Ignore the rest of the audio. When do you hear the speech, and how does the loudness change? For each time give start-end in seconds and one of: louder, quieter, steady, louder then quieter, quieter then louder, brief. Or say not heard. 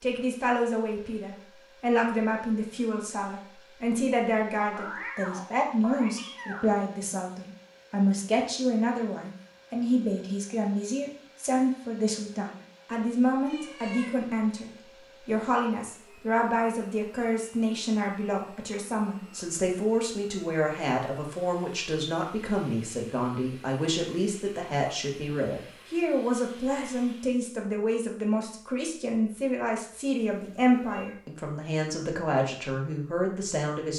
0.0-33.9 steady.